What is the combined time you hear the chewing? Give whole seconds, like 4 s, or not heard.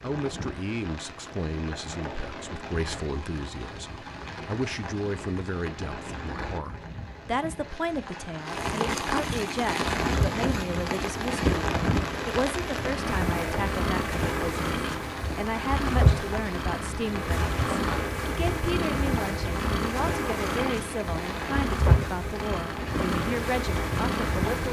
not heard.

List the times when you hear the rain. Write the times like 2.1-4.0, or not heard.
0.0-24.6.